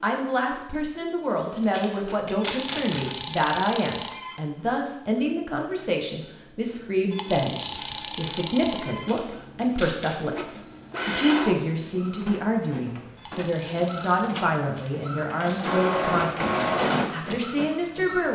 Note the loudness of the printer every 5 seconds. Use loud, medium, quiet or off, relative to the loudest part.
quiet, quiet, medium, loud.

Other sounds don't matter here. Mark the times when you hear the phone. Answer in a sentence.
The phone can be heard from 2.4 to 4.4 s, from 7.1 to 9.1 s and from 13.2 to 14.3 s.